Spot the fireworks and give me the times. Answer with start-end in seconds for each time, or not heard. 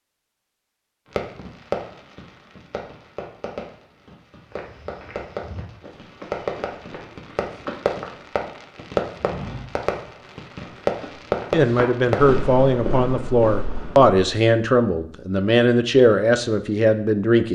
1.1-12.4.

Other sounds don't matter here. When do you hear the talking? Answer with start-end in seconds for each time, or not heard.
11.5-17.4.